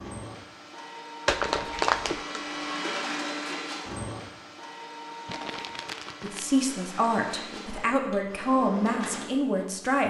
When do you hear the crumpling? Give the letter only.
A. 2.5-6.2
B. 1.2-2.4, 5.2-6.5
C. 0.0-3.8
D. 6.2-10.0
B.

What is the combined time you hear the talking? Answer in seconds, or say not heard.
4 s.